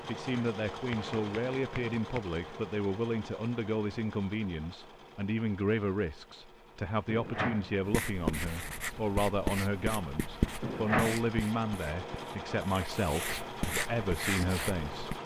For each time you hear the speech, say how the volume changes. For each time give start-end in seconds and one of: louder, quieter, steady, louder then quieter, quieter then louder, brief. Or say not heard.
0.1-15.2 steady.